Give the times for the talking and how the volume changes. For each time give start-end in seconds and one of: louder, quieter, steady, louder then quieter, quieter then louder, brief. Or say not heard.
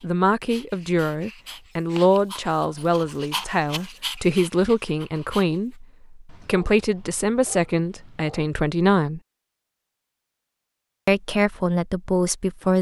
0.0-9.2 steady
11.1-12.7 brief.